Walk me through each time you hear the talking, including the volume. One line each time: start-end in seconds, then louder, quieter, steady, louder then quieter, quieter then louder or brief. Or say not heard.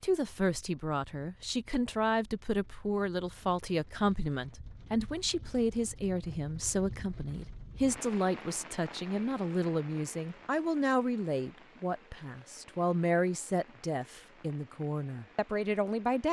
0.0-16.2 steady.